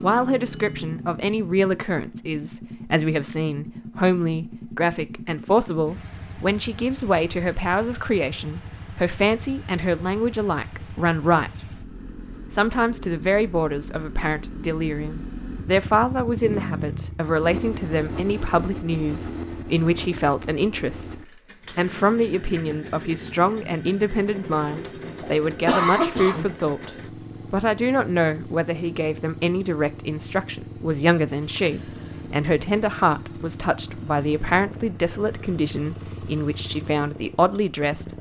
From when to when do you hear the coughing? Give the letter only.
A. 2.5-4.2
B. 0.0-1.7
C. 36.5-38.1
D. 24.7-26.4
D.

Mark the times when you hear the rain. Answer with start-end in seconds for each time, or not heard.
not heard.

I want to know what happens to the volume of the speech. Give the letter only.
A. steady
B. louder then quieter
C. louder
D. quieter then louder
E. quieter
A.